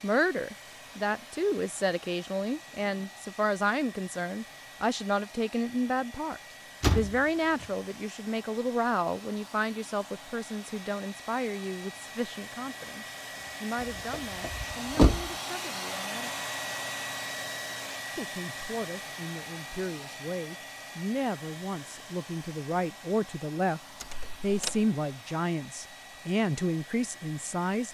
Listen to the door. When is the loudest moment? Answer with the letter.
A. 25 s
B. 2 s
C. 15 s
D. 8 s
C.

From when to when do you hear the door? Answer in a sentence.
The door can be heard from 6.8 to 7.7 s, from 13.8 to 15.3 s and from 24.0 to 24.8 s.